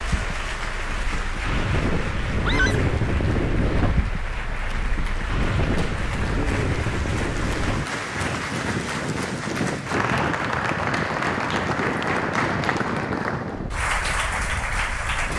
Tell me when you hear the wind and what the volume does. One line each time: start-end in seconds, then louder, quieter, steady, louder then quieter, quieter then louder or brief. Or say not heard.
0.0-15.3 steady.